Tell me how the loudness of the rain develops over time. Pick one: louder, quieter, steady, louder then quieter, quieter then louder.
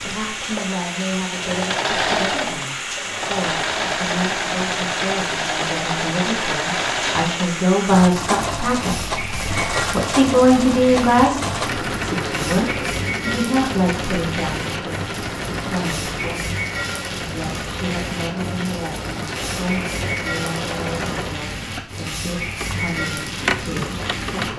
steady.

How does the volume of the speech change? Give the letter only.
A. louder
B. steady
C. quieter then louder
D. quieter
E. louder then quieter
E.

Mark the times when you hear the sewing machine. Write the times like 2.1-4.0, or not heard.
0.0-24.5.